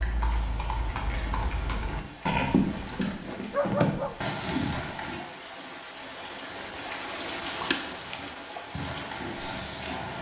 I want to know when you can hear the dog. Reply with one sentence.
The dog can be heard from 3.0 to 4.3 s.